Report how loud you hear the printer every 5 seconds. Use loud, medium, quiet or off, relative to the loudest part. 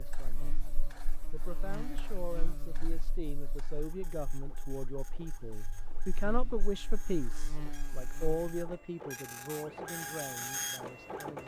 quiet, medium, loud.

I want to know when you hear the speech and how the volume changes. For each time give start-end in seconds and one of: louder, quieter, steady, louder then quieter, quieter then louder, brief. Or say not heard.
0.0-11.4 louder then quieter.